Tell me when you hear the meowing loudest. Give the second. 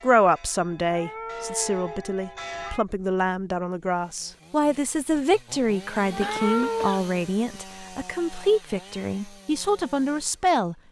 7 s.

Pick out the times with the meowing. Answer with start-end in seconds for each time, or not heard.
0.8-2.9, 6.1-7.0.